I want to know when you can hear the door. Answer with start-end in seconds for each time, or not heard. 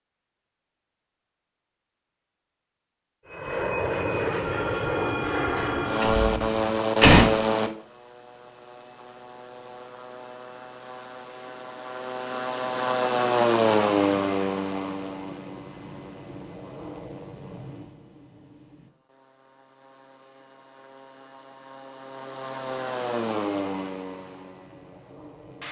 6.0-7.3.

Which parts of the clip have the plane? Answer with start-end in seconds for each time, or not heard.
3.3-25.6.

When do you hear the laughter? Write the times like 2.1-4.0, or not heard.
not heard.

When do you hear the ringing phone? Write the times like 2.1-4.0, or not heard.
4.4-6.3.